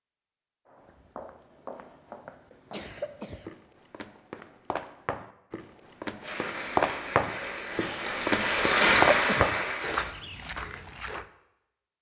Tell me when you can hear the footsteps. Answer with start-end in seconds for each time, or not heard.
0.7-11.3.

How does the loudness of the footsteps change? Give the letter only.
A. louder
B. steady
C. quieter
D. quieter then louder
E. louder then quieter
A.